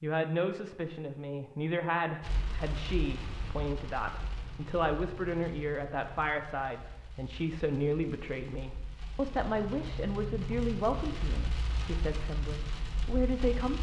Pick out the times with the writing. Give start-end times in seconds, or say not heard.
not heard.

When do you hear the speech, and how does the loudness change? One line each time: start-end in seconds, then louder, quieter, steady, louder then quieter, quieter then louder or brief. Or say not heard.
0.0-13.7 steady.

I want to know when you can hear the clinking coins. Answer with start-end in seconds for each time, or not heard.
not heard.